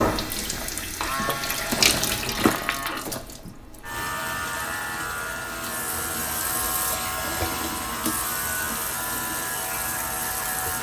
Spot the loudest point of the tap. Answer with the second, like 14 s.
2 s.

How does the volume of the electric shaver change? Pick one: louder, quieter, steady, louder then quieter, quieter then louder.
steady.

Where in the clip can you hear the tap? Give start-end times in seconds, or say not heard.
0.0-10.7.